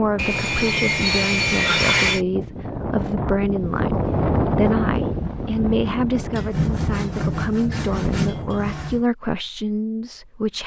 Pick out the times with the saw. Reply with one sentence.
The saw can be heard from 0.1 to 2.2 s and from 6.3 to 9.1 s.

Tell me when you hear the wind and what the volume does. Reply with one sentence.
You can hear the wind from 0.0 to 8.7 s, getting louder then quieter.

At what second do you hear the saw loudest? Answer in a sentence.
The volume of the saw peaks at 2 seconds.